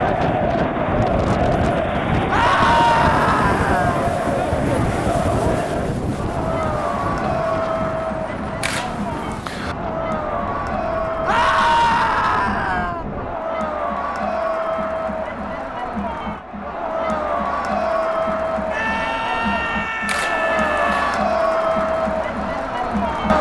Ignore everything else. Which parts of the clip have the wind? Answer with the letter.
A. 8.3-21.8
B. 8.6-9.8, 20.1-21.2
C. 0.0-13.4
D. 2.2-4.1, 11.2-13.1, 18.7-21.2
C.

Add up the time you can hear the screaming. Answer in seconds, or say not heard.
6 s.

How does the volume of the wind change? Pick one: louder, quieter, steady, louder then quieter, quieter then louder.
quieter.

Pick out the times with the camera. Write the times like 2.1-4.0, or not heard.
8.6-9.8, 20.1-21.2.